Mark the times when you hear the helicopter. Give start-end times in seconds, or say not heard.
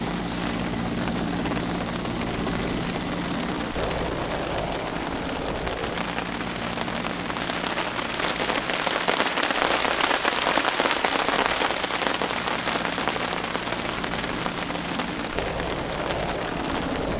0.0-17.1.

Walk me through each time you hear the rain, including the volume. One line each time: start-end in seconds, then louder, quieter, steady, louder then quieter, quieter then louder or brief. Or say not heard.
0.0-17.1 louder then quieter.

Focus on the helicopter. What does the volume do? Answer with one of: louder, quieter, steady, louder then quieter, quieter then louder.
quieter then louder.